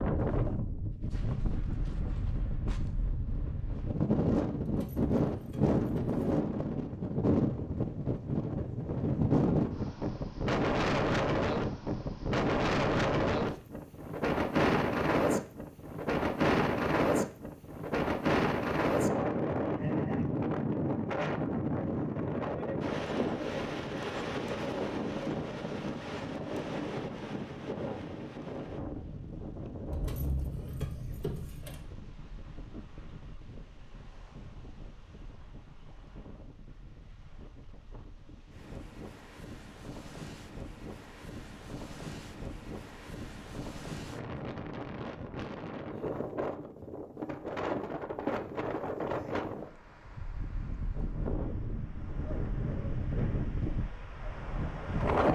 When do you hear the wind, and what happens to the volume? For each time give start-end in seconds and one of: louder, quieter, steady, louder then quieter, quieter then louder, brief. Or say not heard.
0.0-55.2 quieter then louder.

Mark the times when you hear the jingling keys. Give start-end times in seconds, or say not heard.
4.6-6.2, 29.9-31.8.